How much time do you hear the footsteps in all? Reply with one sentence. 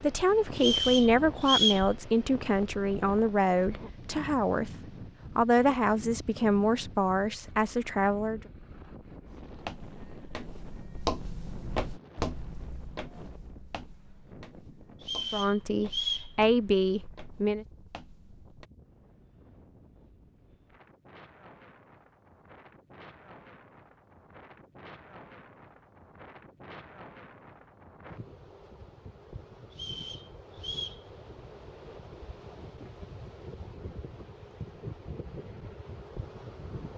The footsteps can be heard for 9 seconds in total.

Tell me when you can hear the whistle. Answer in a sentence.
The whistle can be heard from 0.6 to 1.9 s, from 15.0 to 16.3 s and from 29.7 to 31.0 s.